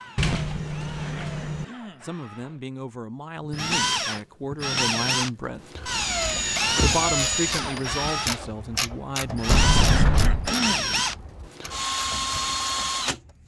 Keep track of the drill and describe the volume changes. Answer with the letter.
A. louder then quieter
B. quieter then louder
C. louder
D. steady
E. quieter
C.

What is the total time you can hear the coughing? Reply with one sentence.
The coughing can be heard for 2 seconds in total.